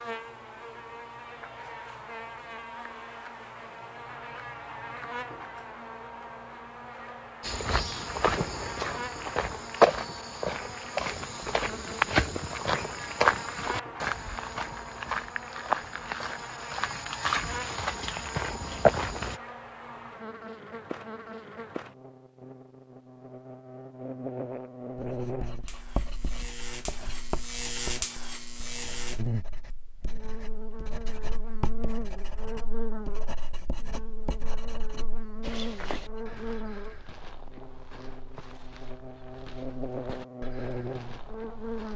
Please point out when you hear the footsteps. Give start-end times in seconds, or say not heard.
7.4-19.4, 35.4-41.9.